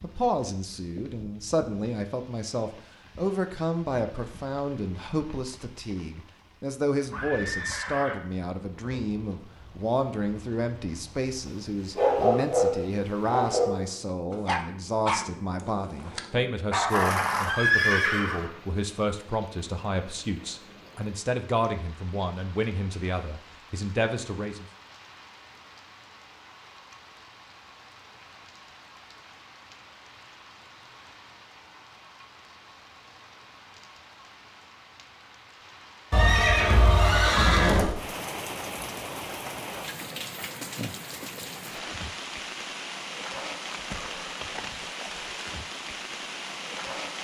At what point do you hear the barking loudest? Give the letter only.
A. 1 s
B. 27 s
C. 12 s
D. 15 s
C.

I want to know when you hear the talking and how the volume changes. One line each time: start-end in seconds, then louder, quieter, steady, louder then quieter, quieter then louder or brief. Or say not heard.
0.0-24.6 steady.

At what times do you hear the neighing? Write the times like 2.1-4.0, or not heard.
7.1-8.2, 16.9-18.5, 36.1-38.0.